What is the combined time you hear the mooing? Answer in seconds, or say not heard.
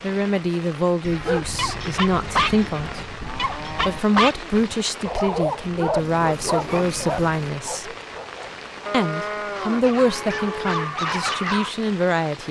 5 s.